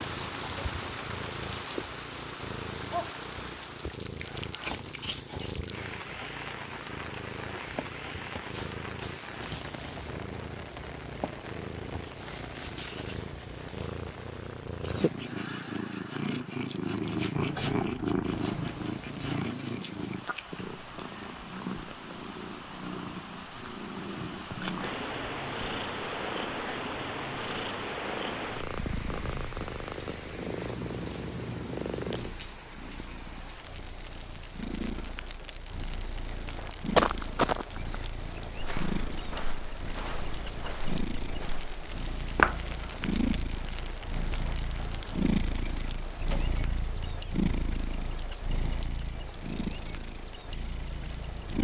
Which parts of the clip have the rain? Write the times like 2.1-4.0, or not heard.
0.0-51.5.